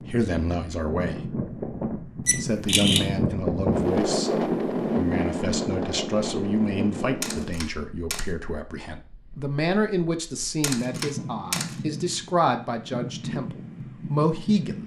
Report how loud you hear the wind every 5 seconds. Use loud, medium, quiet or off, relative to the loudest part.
loud, loud, medium.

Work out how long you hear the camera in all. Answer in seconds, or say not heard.
3 s.